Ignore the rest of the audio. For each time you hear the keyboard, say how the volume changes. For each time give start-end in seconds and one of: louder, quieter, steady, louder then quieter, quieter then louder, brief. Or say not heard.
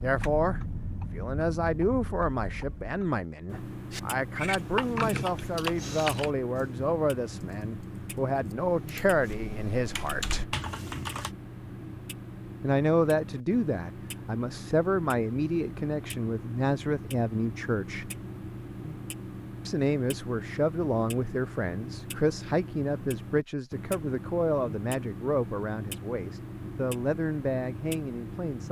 3.9-11.3 quieter then louder.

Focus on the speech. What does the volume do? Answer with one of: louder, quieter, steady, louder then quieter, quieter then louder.
steady.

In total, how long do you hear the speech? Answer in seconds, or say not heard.
25 s.